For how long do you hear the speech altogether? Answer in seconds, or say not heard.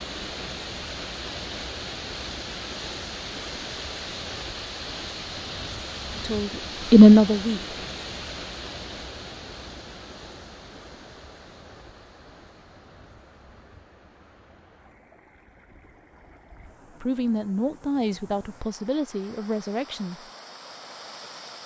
5 s.